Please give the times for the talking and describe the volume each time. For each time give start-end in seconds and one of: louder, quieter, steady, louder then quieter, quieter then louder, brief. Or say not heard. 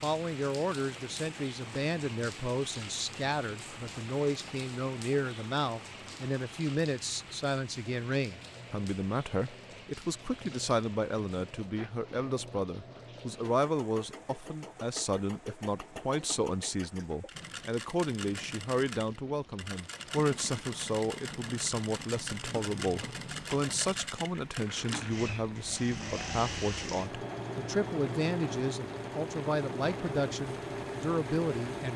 0.0-31.9 steady.